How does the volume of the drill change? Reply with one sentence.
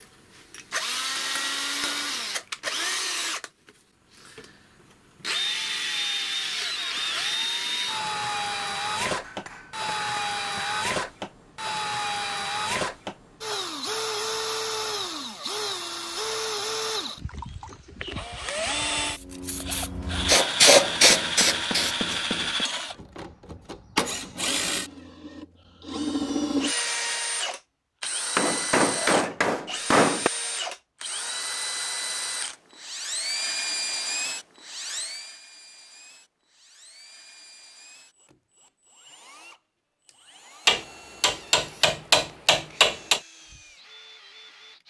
The volume of the drill goes down.